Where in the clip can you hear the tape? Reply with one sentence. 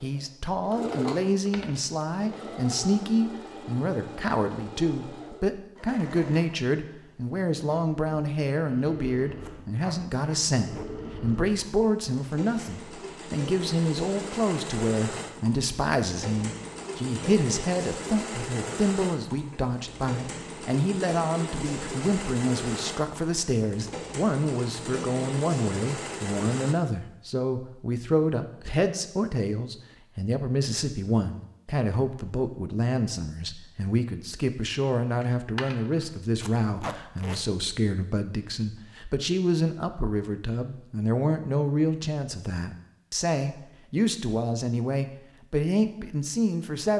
The tape can be heard from 9.4 to 10.8 s and from 36.4 to 37.4 s.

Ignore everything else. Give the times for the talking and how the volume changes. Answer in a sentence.
You can hear the talking from 0.0 to 46.9 s, at a steady volume.